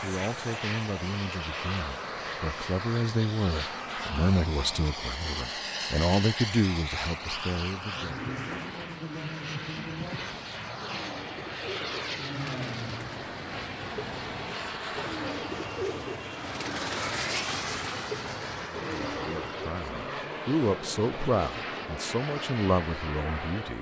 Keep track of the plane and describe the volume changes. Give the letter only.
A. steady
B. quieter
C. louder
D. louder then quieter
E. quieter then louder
A.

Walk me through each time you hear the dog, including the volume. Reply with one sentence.
You can't hear the dog here.